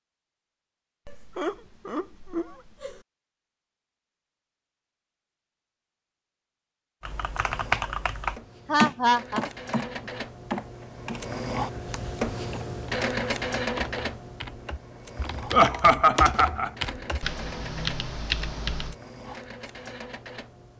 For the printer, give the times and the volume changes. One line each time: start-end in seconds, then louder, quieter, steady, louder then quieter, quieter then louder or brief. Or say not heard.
7.0-20.7 louder then quieter.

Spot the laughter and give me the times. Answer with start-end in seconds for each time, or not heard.
1.1-3.0, 8.7-9.4, 15.5-16.7.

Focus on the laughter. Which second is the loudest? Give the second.
16 s.